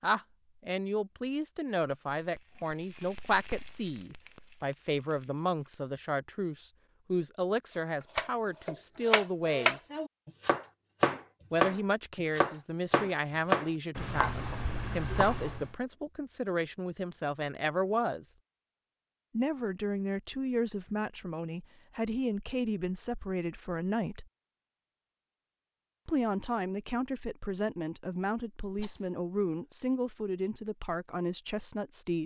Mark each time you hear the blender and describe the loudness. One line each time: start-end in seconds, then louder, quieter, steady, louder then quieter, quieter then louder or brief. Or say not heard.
not heard.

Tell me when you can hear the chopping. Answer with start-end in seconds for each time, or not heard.
8.2-15.7.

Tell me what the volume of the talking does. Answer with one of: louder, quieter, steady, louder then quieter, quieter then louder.
steady.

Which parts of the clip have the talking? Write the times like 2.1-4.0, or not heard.
0.0-9.8, 11.5-18.2, 19.3-24.2, 26.1-32.2.